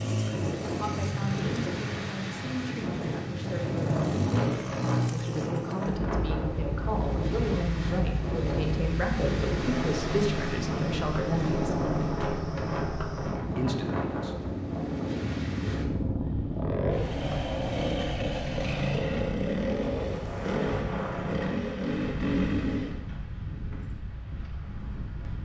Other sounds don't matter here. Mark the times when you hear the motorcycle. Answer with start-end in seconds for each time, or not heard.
0.0-23.0.